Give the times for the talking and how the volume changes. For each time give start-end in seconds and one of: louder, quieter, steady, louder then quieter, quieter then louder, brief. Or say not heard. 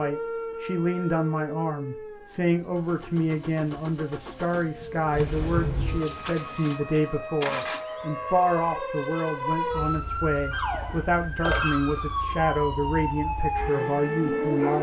0.0-14.7 steady.